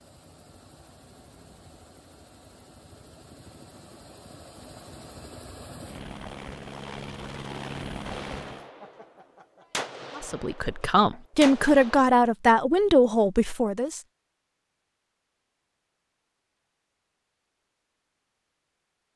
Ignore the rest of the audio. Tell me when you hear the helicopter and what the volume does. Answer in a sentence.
The helicopter can be heard from 0.0 to 8.7 s, getting louder.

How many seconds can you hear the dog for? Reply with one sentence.
The dog can't be heard in this clip.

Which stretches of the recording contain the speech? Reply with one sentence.
The speech can be heard from 10.2 to 14.0 s.